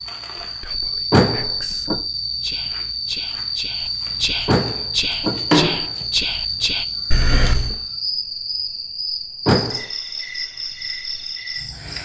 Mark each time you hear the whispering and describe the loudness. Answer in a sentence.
You can hear the whispering from 0.4 to 6.8 s, getting louder.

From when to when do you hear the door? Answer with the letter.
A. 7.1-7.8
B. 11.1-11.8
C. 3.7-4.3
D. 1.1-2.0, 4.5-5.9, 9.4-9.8
D.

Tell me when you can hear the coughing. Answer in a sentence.
You can hear the coughing from 7.1 to 7.8 s.